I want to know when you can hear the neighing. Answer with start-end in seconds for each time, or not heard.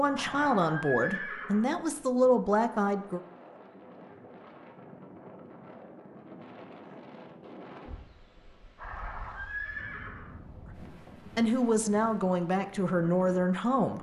0.1-1.7, 8.8-10.3.